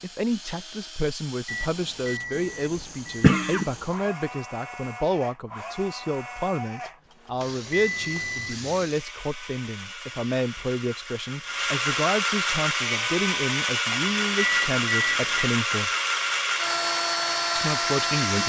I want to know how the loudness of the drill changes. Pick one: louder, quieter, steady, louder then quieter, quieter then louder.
louder.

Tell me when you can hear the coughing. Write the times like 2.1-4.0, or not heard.
2.4-3.7.